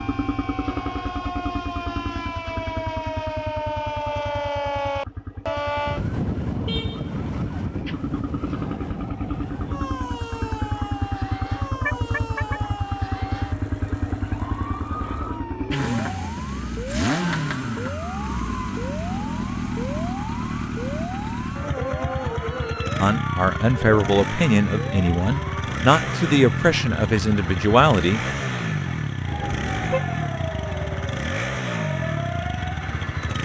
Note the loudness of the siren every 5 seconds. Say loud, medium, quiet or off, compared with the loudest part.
loud, loud, medium, medium, medium, medium, medium.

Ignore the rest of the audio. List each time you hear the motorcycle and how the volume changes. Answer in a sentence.
You can hear the motorcycle from 0.0 to 33.3 s, getting louder.